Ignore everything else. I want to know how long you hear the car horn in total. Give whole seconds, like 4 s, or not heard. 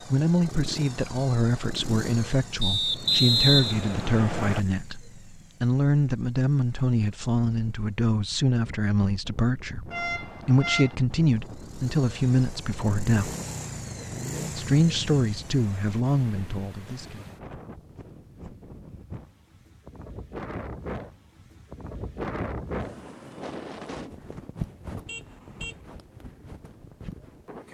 2 s.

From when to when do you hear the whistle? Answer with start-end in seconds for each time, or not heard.
2.6-4.6.